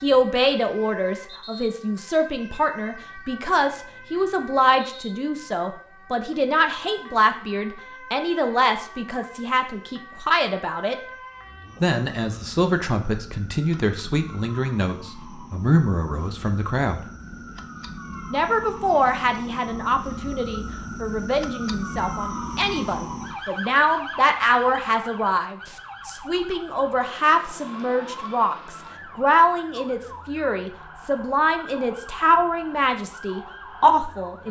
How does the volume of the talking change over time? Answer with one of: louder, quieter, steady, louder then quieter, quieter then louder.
steady.